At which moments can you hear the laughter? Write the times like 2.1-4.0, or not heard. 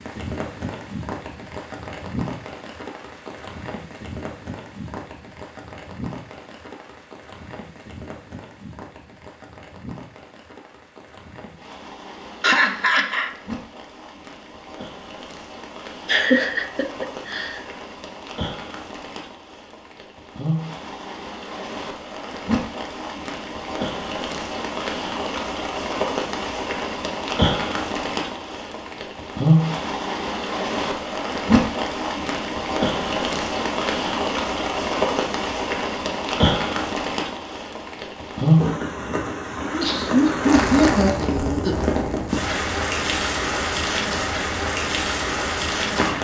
12.4-13.3, 16.1-17.6, 39.6-41.9.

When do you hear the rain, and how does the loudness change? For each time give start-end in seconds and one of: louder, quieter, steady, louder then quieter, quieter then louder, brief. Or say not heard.
0.0-46.1 louder.